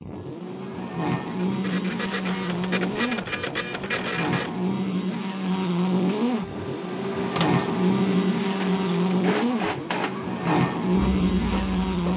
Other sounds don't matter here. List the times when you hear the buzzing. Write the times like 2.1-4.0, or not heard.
0.0-12.1.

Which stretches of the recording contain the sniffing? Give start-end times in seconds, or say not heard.
not heard.